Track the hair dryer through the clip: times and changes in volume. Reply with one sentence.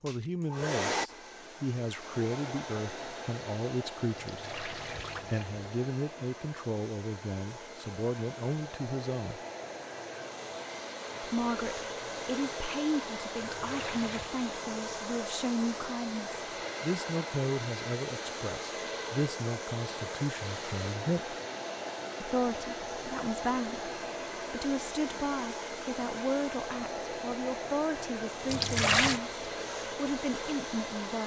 The hair dryer can be heard from 0.1 to 31.2 s, at a steady volume.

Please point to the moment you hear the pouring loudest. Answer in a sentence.
The volume of the pouring peaks at 29 seconds.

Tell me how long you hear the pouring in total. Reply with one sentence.
You can hear the pouring for 3 seconds altogether.